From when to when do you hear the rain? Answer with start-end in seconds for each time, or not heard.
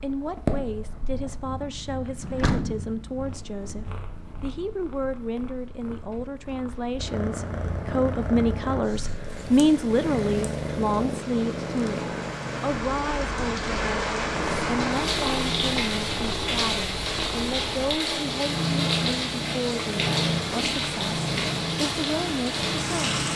9.2-23.3.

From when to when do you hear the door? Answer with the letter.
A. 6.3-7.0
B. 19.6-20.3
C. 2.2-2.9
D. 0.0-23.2
C.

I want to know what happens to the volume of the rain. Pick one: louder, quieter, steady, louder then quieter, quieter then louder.
louder.